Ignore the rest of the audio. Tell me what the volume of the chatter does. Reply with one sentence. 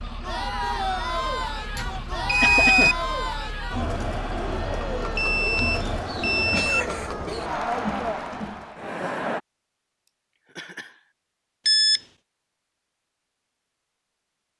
The volume of the chatter stays about the same.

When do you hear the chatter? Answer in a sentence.
You can hear the chatter from 0.0 to 9.4 s.